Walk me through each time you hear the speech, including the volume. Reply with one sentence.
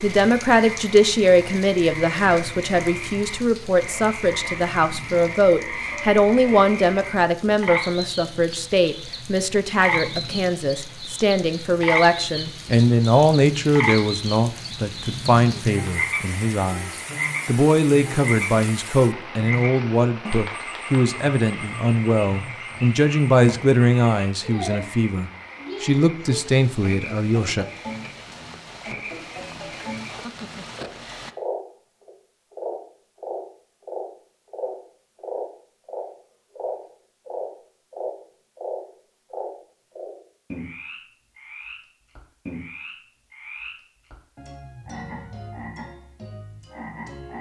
The speech can be heard from 0.0 to 27.6 s, at a steady volume.